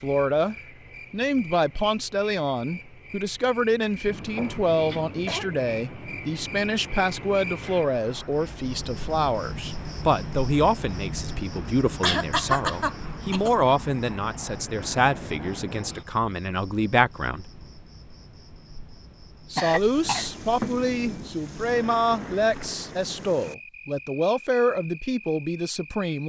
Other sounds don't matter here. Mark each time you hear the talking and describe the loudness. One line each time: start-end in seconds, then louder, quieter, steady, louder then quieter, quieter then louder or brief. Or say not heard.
0.0-17.5 steady
19.5-26.2 steady.